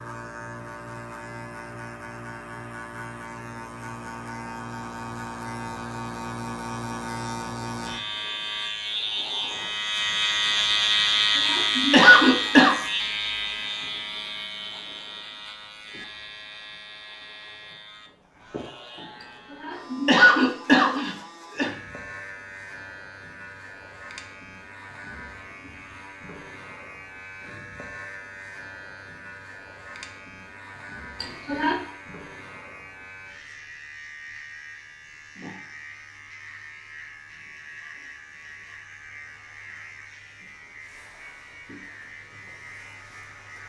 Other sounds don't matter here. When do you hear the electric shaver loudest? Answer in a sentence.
The volume of the electric shaver peaks at 11 seconds.